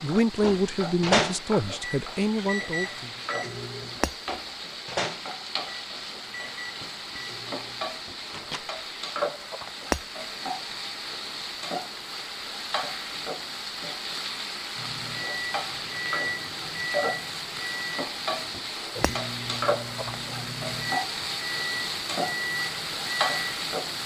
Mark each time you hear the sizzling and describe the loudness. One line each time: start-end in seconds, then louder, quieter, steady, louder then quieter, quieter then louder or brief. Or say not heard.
0.0-24.0 louder.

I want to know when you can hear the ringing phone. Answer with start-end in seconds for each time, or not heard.
not heard.